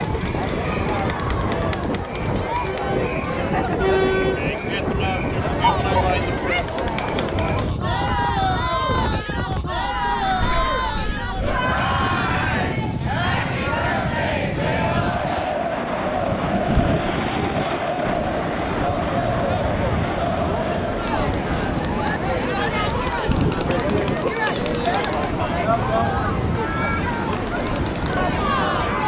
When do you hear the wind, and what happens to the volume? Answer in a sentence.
The wind can be heard from 0.0 to 29.0 s, at a steady volume.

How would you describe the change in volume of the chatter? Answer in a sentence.
The volume of the chatter stays about the same.